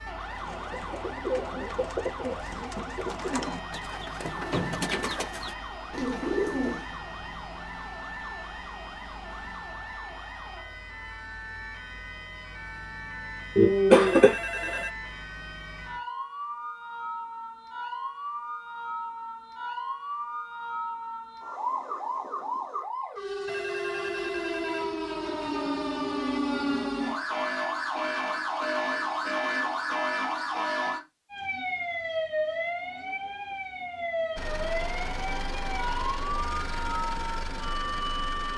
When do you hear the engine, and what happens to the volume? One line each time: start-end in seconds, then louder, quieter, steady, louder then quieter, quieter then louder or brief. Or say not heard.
34.4-38.5 steady.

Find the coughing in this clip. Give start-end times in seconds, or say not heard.
13.6-14.8.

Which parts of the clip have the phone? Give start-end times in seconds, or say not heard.
14.1-14.9, 23.4-25.6.